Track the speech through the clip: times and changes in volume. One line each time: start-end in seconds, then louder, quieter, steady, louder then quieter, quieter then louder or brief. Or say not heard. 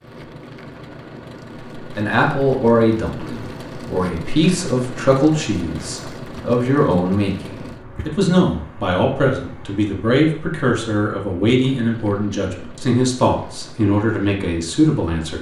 1.8-15.3 steady.